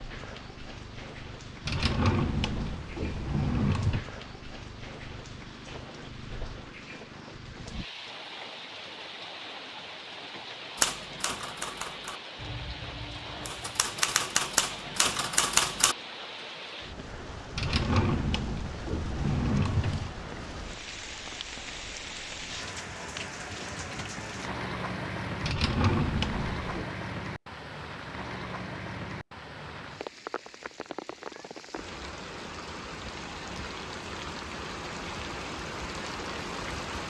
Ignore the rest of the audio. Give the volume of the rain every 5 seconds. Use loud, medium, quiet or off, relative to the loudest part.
medium, medium, medium, medium, loud, loud, loud, loud.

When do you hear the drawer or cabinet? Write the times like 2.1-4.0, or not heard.
1.6-4.0, 17.6-20.1, 25.4-26.9.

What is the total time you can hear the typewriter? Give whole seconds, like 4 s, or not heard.
5 s.